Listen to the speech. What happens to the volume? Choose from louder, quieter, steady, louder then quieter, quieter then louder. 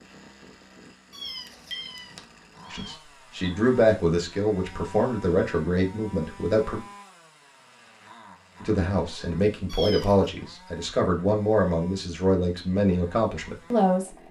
steady.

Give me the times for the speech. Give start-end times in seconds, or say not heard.
2.7-6.8, 8.6-14.2.